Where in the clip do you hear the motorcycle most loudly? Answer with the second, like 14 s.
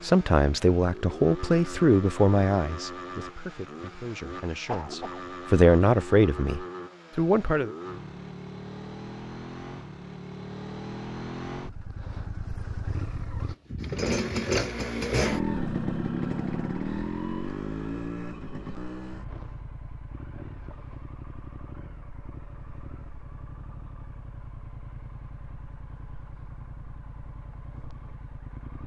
15 s.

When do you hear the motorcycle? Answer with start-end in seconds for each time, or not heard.
0.0-28.8.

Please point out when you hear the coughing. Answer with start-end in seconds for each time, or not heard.
4.7-5.2.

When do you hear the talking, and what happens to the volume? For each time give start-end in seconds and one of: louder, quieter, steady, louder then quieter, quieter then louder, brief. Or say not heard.
0.0-7.7 quieter then louder.